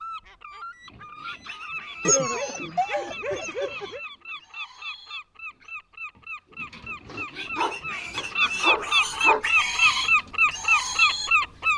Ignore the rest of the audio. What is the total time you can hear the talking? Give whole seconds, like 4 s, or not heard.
not heard.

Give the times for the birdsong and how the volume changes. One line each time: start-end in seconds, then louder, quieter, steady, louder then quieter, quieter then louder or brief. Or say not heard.
0.0-11.7 louder.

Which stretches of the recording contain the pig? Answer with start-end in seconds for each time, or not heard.
0.8-11.3.